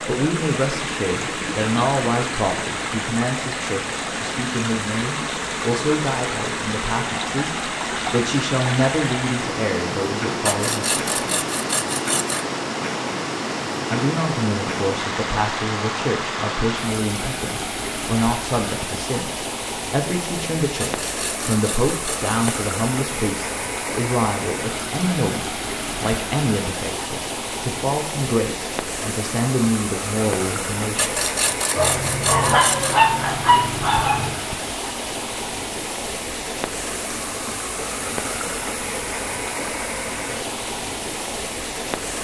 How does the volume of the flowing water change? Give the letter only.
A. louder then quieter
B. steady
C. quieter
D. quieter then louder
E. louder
B.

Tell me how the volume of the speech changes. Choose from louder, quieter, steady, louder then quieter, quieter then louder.
steady.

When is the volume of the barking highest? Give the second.
33 s.